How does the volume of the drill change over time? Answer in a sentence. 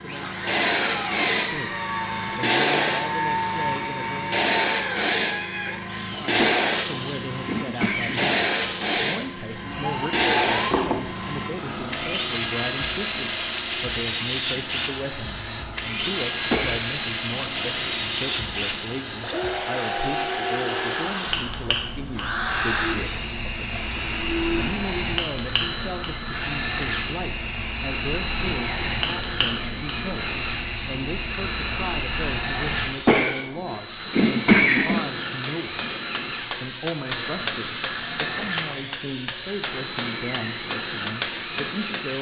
The volume of the drill stays about the same.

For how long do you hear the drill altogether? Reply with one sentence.
The drill can be heard for 42 seconds in total.